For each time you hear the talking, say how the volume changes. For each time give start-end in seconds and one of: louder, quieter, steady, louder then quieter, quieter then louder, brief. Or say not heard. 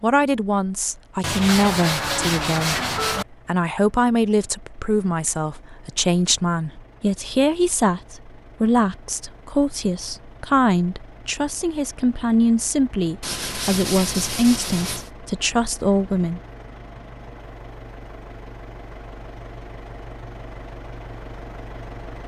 0.0-16.4 steady.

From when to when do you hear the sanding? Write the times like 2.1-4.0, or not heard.
1.2-3.2, 13.2-15.1.